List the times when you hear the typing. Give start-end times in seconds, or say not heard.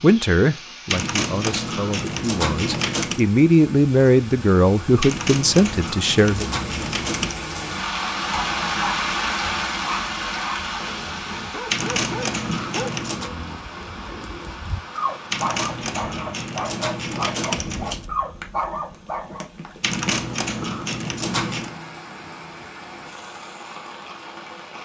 0.8-3.2, 5.0-7.5, 11.7-13.3, 15.3-18.1, 19.8-21.8.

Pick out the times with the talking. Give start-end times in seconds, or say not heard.
0.0-6.5.